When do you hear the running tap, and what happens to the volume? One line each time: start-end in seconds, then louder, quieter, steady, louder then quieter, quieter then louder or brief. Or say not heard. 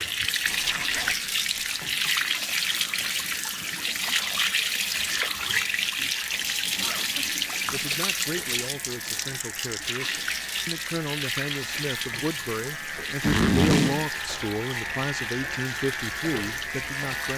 0.0-17.3 quieter.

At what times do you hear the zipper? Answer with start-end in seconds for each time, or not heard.
0.4-1.8, 6.8-7.8, 13.2-14.1.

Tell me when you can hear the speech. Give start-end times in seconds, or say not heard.
7.7-17.3.